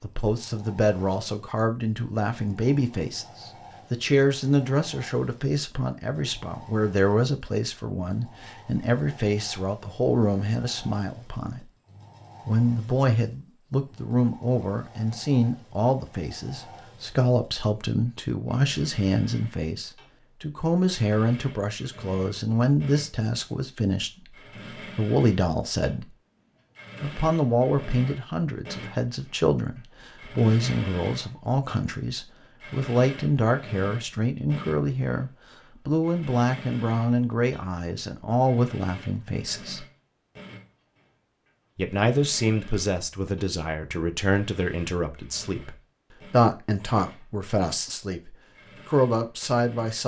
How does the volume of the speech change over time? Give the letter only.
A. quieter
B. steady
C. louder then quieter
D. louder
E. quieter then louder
B.